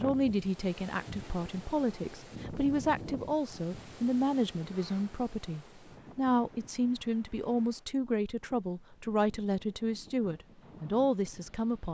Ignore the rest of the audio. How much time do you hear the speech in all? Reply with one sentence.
The speech can be heard for 12 seconds in total.